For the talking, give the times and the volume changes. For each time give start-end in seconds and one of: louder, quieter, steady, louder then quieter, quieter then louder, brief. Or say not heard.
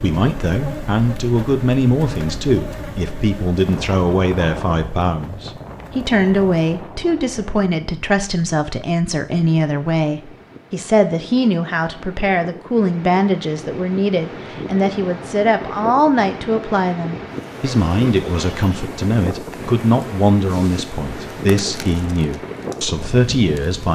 0.0-23.9 steady.